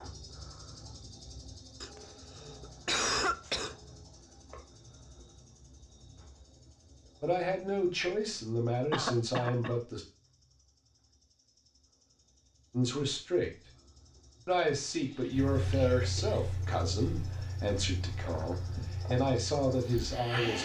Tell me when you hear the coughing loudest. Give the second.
3 s.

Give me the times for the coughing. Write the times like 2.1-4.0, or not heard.
1.8-3.8, 8.9-9.8, 14.9-16.4.